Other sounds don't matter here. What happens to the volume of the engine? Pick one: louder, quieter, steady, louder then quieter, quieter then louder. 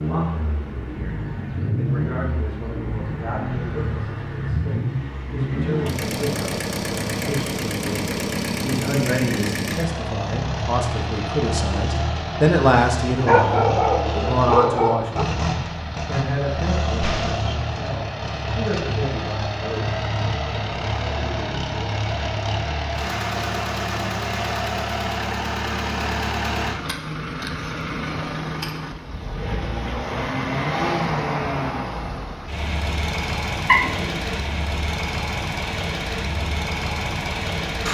steady.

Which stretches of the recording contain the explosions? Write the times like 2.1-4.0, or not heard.
17.0-17.4.